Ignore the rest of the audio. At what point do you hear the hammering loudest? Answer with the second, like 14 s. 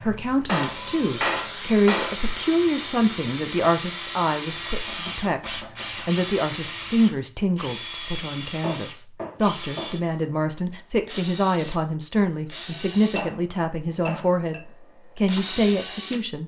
1 s.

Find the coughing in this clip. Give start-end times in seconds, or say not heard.
not heard.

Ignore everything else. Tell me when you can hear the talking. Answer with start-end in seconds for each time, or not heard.
0.0-16.4.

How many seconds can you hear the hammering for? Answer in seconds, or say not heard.
6 s.